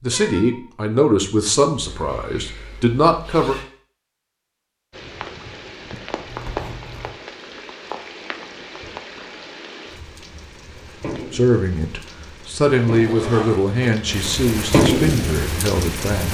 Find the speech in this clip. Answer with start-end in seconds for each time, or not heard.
0.0-3.5, 11.3-16.2.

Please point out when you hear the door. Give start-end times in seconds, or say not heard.
not heard.